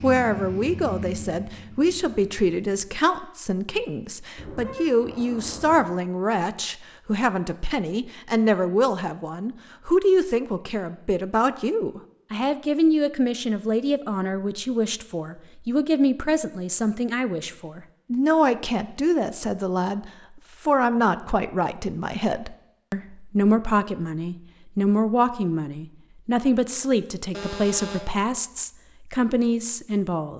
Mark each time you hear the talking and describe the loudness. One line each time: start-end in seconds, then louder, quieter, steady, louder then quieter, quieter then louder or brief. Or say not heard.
0.0-30.3 steady.